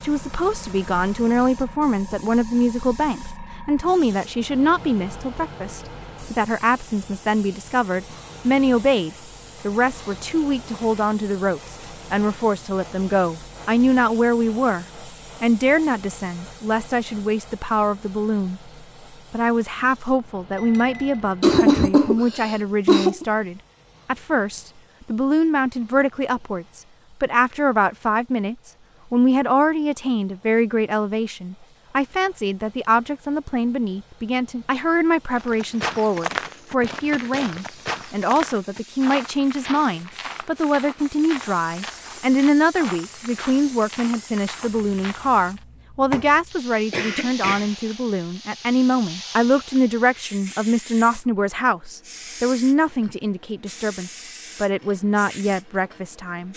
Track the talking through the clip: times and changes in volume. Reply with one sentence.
You can hear the talking from 0.0 to 18.7 s, at a steady volume; and from 19.3 to 56.5 s, at a steady volume.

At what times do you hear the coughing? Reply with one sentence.
The coughing can be heard from 20.6 to 23.2 s and from 46.9 to 47.7 s.